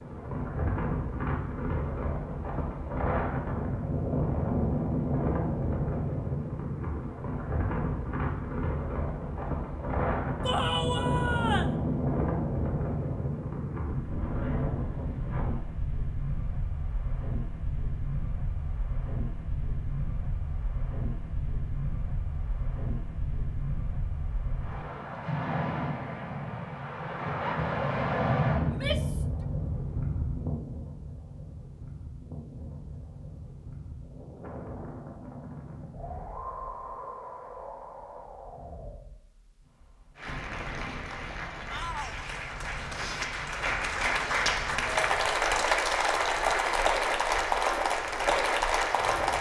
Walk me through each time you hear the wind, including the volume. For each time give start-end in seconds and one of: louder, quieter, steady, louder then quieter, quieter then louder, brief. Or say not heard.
0.0-49.3 quieter.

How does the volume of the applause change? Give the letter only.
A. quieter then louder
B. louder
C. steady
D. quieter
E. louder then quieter
B.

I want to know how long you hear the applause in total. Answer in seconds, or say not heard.
9 s.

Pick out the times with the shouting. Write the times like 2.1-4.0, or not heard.
10.4-11.8, 28.6-29.2, 41.7-42.3.